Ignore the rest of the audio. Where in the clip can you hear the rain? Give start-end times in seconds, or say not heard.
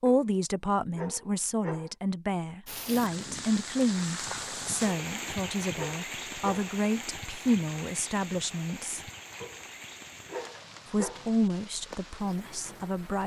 2.6-13.2.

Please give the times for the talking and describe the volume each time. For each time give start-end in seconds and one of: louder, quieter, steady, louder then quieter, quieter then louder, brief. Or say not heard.
0.0-9.0 steady
10.9-13.2 brief.